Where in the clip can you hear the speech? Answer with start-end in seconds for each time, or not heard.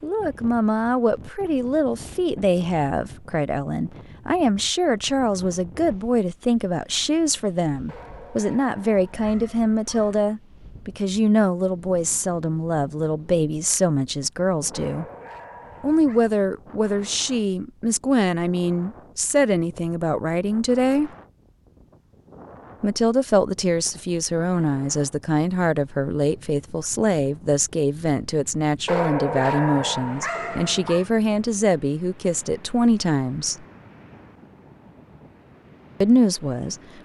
0.0-15.1, 15.8-21.1, 22.8-33.6, 36.0-36.8.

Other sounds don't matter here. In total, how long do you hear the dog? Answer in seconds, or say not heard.
6 s.